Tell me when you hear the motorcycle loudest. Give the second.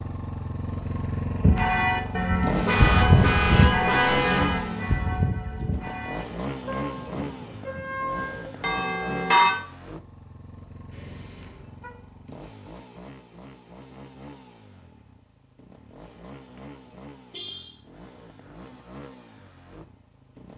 3 s.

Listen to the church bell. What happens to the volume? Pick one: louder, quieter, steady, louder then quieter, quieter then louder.
quieter then louder.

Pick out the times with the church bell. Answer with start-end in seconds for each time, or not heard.
1.4-9.6.